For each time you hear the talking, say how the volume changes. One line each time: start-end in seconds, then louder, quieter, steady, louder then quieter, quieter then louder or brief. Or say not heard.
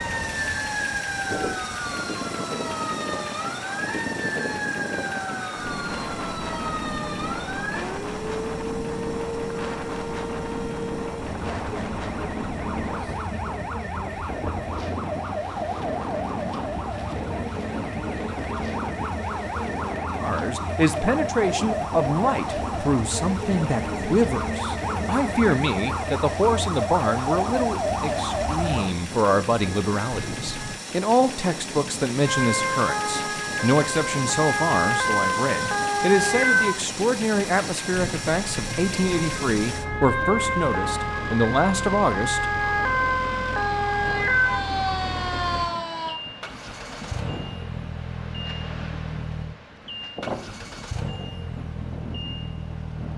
20.1-42.5 steady.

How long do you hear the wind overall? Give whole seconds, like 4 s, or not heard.
53 s.